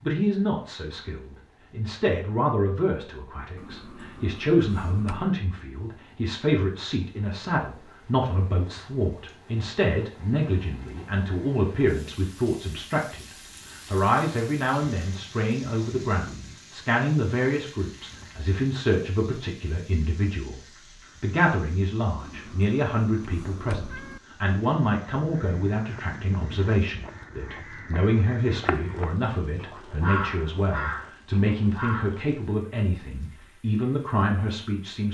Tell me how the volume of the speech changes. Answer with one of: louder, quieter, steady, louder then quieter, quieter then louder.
steady.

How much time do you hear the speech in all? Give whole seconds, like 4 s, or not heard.
35 s.